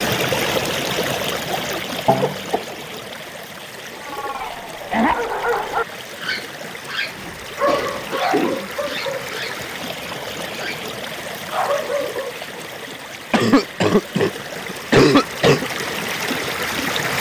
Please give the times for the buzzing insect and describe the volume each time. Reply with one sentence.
The buzzing insect can't be heard in this clip.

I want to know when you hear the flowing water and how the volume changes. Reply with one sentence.
You can hear the flowing water from 0.0 to 17.1 s, getting quieter then louder.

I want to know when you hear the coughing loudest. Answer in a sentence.
The loudest moment of the coughing is at 15 seconds.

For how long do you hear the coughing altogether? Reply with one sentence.
You can hear the coughing for 4 seconds altogether.